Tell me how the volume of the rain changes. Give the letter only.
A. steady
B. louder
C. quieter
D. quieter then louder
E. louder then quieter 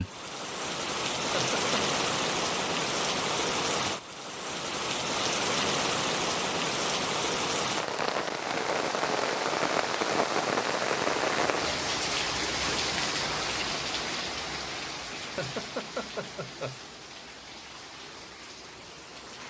C.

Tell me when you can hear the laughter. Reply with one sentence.
You can hear the laughter from 1.2 to 1.6 s and from 15.2 to 16.8 s.